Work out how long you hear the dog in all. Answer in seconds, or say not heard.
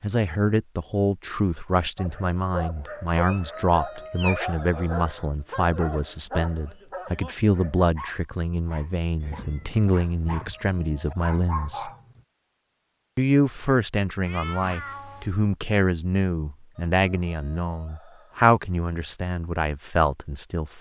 10 s.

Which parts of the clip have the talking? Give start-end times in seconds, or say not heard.
0.0-11.9, 13.2-20.7.